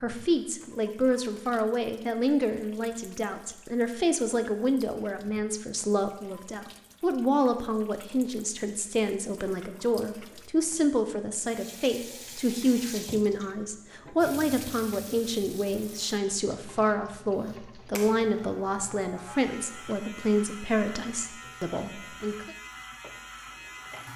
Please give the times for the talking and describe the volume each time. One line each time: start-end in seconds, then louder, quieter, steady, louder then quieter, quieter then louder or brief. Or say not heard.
0.0-22.5 steady.